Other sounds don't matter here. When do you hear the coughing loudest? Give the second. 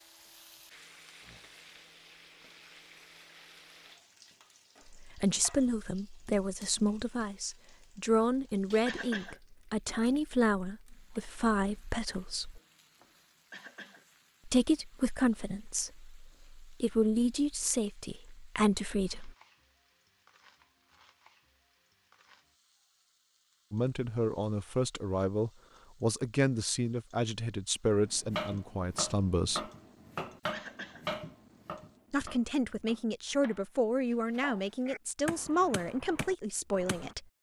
9 s.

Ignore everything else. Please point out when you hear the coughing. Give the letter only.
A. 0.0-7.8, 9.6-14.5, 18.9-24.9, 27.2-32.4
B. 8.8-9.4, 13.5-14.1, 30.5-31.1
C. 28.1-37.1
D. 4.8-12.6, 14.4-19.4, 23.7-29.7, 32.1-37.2
B.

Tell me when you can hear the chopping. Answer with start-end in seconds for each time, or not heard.
28.1-37.1.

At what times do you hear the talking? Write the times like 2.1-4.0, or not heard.
4.8-12.6, 14.4-19.4, 23.7-29.7, 32.1-37.2.